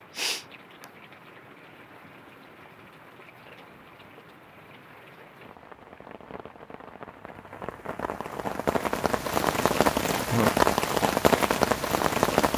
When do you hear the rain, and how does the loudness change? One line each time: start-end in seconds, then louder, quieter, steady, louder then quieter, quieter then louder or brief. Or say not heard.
0.0-12.5 louder.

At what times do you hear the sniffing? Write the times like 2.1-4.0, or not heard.
0.1-0.8.